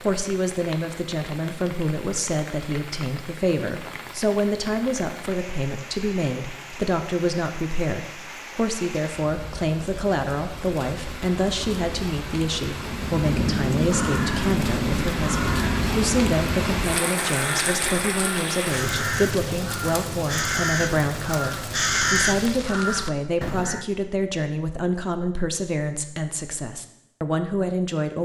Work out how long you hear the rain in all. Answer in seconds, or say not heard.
23 s.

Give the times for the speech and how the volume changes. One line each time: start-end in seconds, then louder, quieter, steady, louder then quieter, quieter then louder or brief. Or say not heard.
0.0-28.2 steady.